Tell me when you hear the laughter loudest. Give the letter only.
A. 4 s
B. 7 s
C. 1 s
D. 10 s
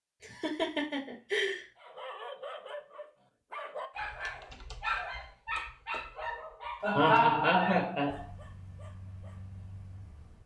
B.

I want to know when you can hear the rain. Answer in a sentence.
You can't hear the rain here.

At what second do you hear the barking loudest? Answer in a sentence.
The loudest moment of the barking is at 5 seconds.